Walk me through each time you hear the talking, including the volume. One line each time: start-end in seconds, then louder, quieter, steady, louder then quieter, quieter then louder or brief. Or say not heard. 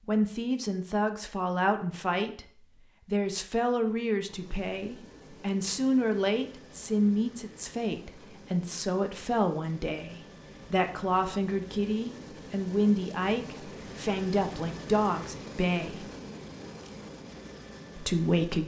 0.1-16.1 steady
17.9-18.6 brief.